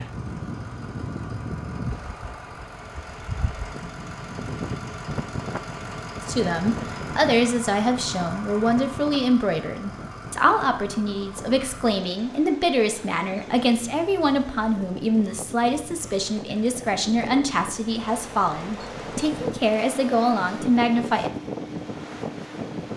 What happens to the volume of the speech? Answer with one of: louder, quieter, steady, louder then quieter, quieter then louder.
steady.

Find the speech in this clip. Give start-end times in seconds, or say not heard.
6.2-21.3.